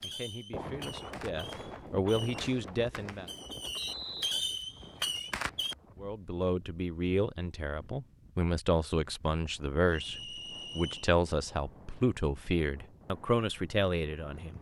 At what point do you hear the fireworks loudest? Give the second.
4 s.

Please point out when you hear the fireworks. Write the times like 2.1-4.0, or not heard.
0.0-5.8.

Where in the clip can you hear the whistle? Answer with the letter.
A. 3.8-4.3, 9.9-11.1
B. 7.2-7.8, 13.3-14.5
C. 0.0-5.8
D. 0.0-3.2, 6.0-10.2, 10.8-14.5
A.